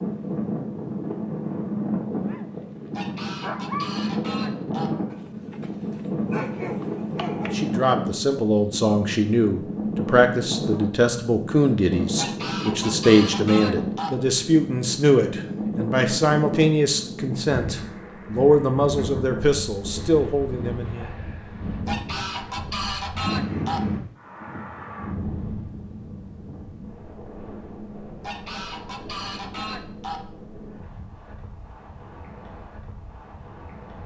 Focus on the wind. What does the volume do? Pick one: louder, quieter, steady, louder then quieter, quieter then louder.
quieter.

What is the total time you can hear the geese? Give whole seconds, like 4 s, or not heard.
8 s.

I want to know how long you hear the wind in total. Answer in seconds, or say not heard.
34 s.